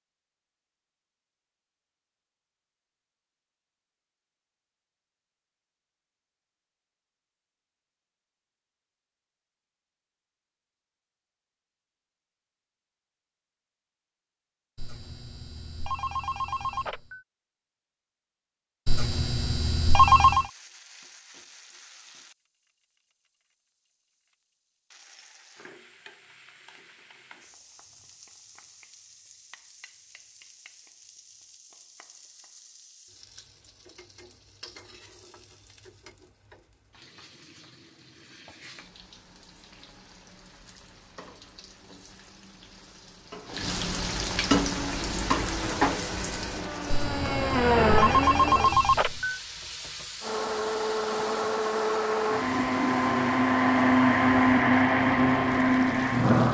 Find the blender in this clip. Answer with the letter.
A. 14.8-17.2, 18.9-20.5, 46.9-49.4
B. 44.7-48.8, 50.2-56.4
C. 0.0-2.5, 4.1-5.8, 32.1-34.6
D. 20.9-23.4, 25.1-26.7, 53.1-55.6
B.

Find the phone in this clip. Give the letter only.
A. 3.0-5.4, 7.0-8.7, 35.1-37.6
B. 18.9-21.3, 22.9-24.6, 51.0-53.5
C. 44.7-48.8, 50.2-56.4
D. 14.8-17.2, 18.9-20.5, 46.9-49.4
D.